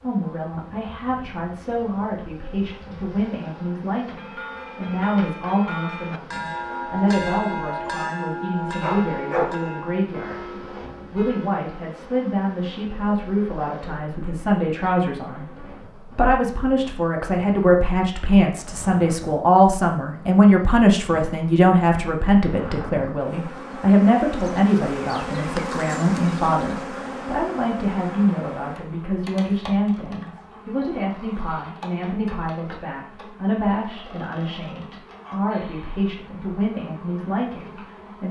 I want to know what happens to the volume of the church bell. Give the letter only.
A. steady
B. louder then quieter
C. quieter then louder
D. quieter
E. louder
B.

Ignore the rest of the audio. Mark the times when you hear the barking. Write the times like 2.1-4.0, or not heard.
8.8-9.6.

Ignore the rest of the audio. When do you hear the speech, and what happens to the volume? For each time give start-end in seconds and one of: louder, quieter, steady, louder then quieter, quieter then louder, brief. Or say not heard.
0.0-38.2 louder then quieter.